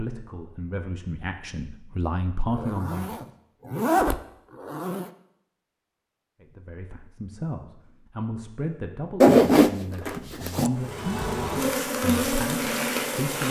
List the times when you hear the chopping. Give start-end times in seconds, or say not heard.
not heard.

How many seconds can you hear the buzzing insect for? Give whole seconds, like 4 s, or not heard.
3 s.